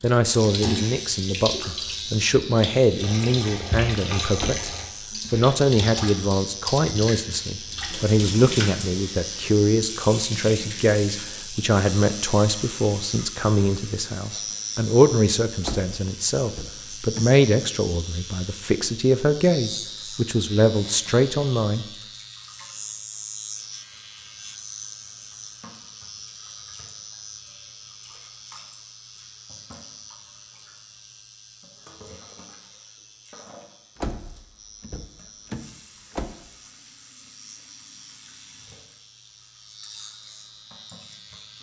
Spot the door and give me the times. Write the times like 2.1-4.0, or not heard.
4.3-5.5, 15.6-17.3, 34.0-36.3.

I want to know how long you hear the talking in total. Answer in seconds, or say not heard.
21 s.